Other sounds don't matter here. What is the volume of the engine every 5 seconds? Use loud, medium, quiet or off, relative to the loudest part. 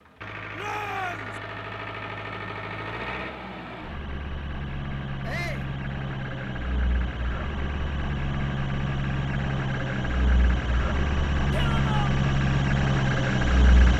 medium, medium, loud.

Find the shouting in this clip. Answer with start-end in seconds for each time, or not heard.
0.6-1.3, 5.2-5.7, 11.5-12.1.